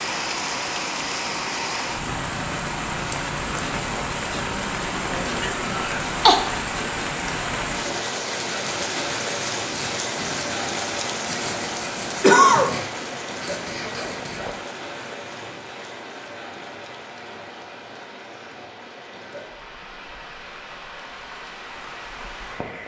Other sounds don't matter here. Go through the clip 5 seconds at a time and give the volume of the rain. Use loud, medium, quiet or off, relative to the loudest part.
loud, loud, loud, medium, medium.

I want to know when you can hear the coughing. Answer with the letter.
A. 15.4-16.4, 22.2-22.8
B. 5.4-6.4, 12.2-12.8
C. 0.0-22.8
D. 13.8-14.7
B.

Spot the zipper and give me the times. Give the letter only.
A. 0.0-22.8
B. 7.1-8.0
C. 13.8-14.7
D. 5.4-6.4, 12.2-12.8
C.